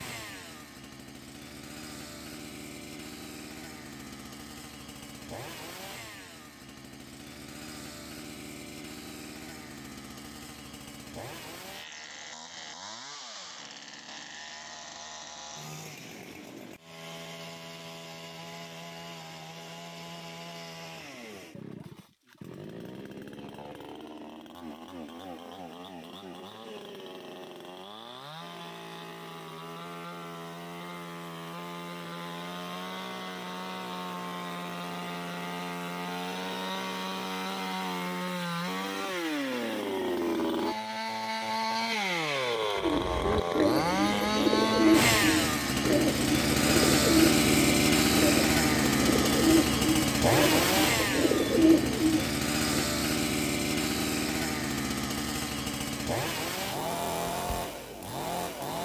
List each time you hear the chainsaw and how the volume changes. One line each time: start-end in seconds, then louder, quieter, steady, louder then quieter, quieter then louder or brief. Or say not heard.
0.0-58.8 louder.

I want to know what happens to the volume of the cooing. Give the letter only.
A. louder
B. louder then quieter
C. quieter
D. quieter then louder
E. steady
E.